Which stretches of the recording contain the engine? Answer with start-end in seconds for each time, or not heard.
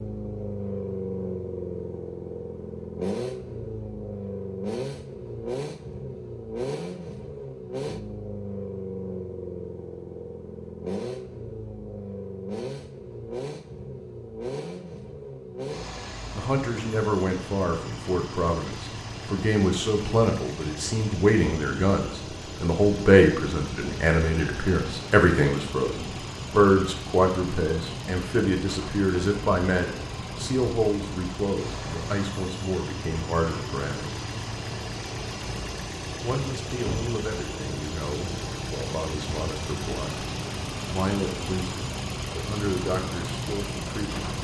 0.0-44.3.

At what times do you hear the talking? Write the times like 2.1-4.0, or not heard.
16.4-34.0, 36.2-40.2, 40.9-44.3.